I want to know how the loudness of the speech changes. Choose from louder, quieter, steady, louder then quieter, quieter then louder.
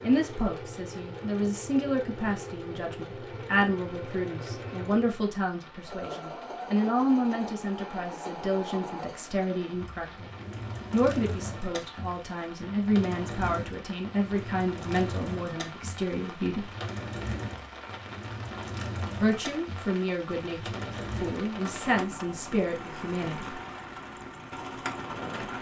steady.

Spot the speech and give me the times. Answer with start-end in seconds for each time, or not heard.
0.0-10.3, 10.9-16.7, 19.1-23.6.